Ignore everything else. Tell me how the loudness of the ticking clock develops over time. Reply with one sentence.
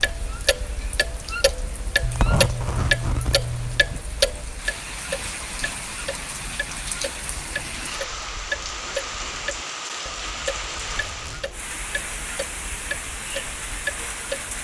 The loudness of the ticking clock goes down.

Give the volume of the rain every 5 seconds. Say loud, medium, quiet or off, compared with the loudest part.
medium, loud, loud.